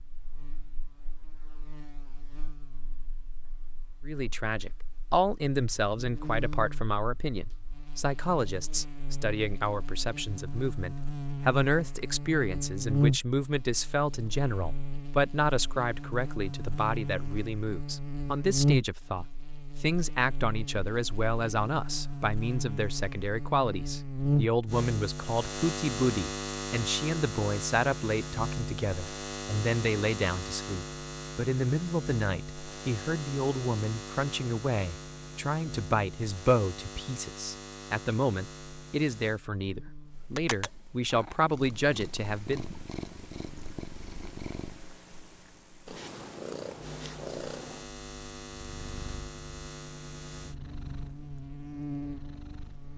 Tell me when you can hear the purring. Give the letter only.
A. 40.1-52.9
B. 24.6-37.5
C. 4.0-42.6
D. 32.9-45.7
A.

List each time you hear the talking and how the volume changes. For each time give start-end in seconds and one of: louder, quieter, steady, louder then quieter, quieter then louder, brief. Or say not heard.
4.0-42.6 steady.